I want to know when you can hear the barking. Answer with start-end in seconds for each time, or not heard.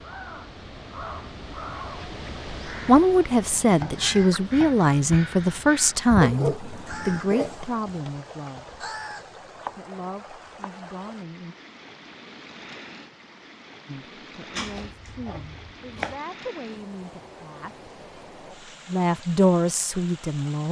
6.2-8.0.